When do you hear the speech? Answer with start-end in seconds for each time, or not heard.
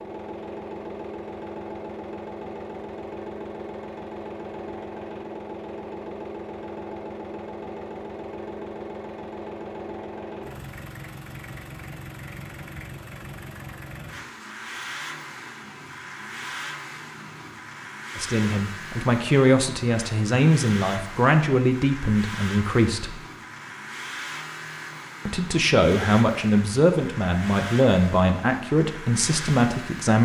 18.1-23.1, 25.2-30.1.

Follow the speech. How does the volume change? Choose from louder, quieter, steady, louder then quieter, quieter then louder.
steady.